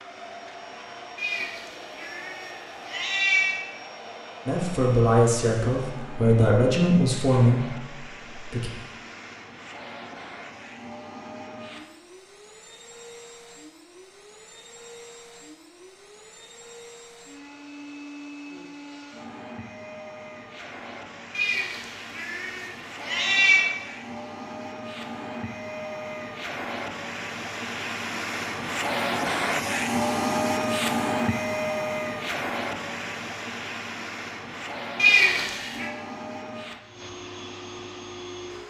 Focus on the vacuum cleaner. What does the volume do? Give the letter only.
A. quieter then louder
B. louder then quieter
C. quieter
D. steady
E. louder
E.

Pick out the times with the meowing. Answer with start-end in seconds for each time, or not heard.
1.1-3.6, 21.4-23.6, 35.0-35.9.